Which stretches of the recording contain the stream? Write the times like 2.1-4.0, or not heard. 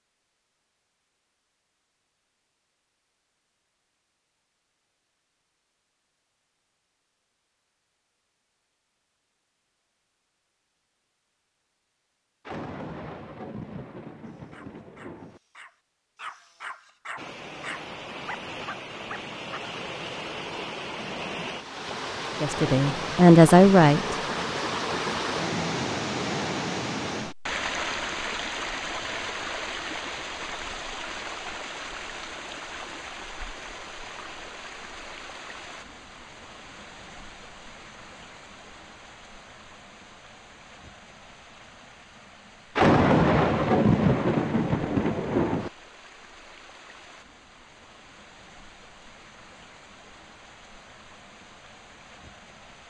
17.1-52.8.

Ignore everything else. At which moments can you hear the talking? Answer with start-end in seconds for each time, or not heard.
22.4-24.4.